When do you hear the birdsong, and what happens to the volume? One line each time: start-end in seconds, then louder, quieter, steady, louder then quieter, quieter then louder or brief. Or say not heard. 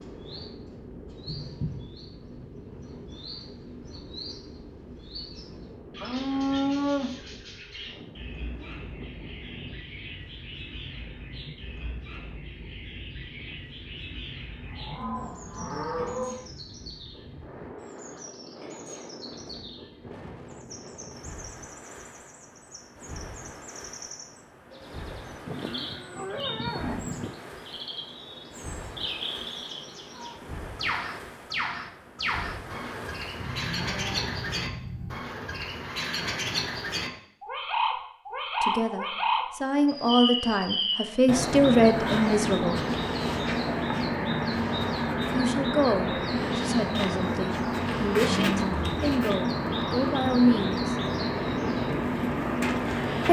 0.0-53.2 louder.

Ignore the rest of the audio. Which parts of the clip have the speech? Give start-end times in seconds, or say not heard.
38.6-42.8, 45.3-51.0.